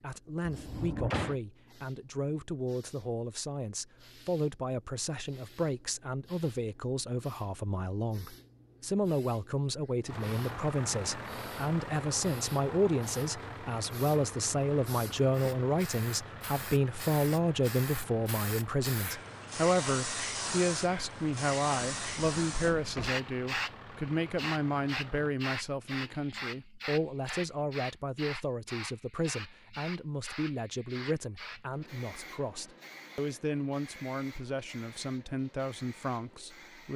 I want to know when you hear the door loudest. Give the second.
1 s.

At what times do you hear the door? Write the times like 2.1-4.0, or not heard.
0.5-1.4, 21.8-23.1.